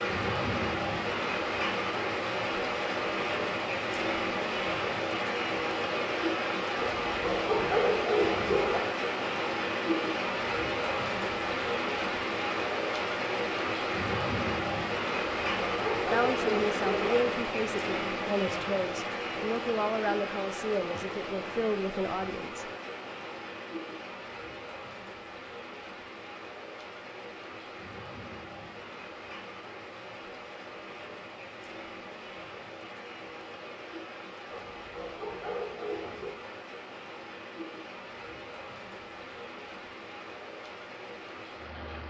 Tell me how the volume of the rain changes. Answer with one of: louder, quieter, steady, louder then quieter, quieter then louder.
quieter.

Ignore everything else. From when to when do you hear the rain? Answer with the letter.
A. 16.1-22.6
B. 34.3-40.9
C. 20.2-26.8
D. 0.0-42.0
D.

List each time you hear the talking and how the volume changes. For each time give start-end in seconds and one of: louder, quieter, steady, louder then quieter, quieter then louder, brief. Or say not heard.
16.1-22.6 steady.